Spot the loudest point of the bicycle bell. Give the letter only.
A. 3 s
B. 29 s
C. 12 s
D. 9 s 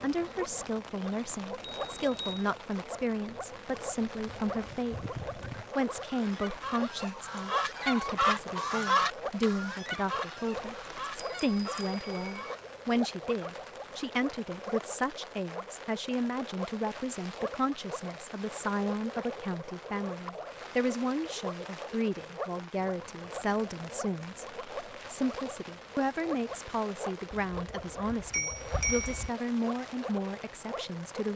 B.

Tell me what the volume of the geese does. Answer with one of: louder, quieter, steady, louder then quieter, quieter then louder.
louder then quieter.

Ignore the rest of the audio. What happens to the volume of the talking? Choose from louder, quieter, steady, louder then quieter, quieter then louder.
steady.